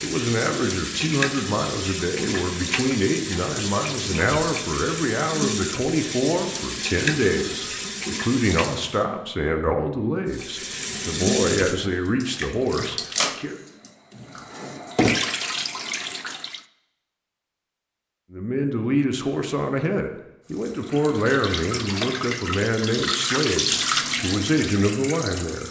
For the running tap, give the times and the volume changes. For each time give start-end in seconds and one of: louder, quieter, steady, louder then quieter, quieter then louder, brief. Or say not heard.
0.0-9.1 steady
10.3-16.6 quieter then louder
20.4-25.6 louder then quieter.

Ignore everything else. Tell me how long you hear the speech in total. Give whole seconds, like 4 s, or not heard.
21 s.